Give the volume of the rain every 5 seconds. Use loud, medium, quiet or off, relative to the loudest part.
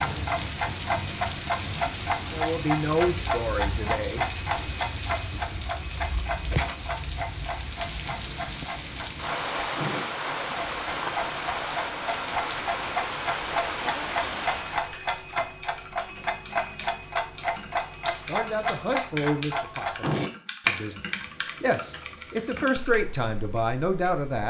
loud, loud, loud, off, off.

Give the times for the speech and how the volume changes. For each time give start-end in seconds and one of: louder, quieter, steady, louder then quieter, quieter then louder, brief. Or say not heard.
2.3-4.2 brief
18.1-24.4 quieter then louder.